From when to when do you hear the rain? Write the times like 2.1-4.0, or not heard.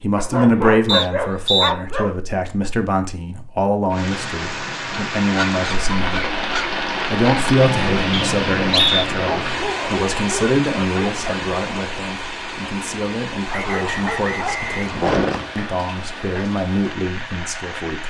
3.9-18.0.